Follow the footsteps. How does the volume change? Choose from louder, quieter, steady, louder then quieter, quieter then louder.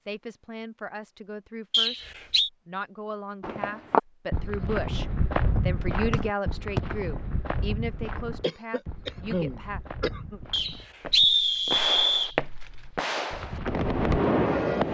quieter then louder.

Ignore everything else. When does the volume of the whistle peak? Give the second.
11 s.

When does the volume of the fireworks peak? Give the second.
14 s.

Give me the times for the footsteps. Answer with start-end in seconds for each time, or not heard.
3.4-13.9.